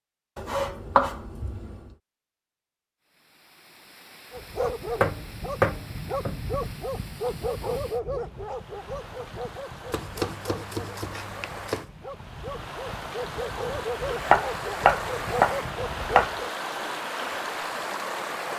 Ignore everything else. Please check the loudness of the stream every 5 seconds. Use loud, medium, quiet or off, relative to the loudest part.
quiet, quiet, medium, loud.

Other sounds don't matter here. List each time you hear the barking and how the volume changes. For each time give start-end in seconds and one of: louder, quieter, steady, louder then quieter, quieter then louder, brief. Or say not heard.
4.3-16.5 quieter then louder.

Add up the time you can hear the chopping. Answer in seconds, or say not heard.
7 s.